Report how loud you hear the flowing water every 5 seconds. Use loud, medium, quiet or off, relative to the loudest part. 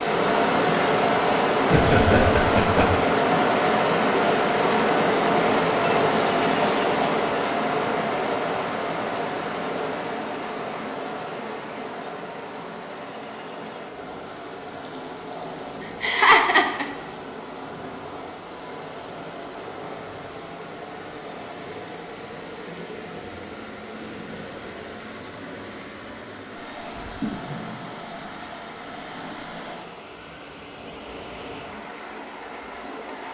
loud, loud, quiet, quiet, quiet, quiet, quiet.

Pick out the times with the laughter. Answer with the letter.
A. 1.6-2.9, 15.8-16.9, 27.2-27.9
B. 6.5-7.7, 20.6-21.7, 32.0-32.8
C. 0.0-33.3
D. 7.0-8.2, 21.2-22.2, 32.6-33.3
A.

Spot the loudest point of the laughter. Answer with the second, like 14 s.
16 s.